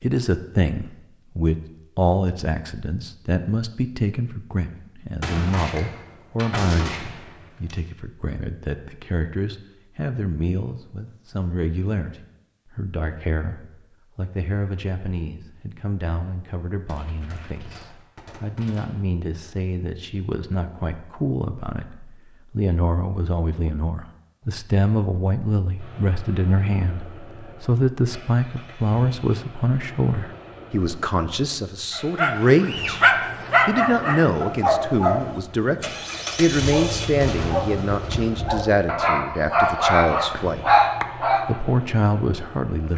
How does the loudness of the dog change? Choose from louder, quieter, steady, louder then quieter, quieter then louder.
quieter then louder.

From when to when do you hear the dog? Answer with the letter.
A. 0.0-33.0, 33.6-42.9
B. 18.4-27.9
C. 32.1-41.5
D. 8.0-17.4
C.